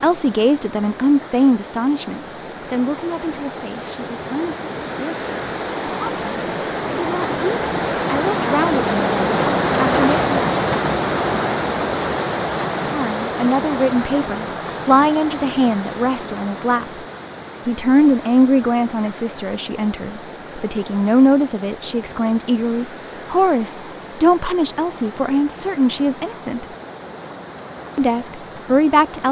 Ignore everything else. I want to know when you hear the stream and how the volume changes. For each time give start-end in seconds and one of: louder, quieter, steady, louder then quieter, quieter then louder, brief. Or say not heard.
0.0-29.2 louder then quieter.